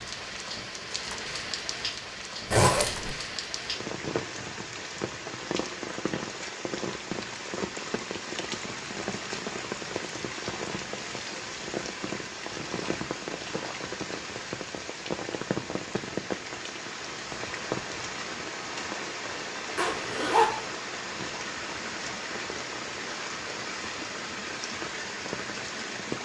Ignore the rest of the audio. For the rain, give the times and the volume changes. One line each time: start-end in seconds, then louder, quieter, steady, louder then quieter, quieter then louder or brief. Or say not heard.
0.0-26.2 steady.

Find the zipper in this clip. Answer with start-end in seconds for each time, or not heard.
2.5-3.1, 19.8-20.6.